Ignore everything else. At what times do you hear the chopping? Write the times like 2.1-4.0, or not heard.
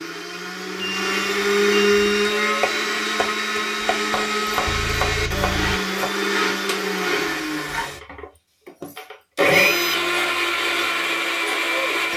2.2-6.1.